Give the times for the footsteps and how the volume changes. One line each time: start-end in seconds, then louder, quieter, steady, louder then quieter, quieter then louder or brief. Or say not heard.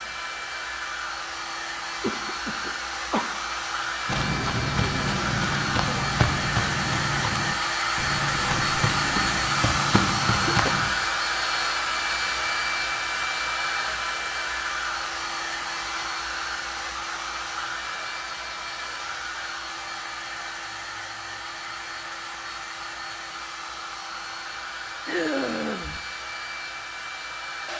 4.0-10.9 steady.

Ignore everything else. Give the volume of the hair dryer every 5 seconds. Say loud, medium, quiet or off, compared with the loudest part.
medium, loud, loud, medium, medium, medium.